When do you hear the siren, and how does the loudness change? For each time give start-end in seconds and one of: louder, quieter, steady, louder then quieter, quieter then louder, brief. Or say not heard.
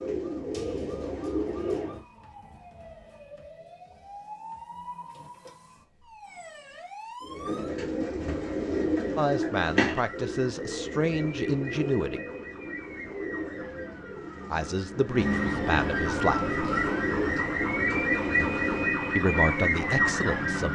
0.0-20.6 louder.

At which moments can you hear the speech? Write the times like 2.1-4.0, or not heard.
9.2-12.2, 14.5-16.6, 19.1-20.6.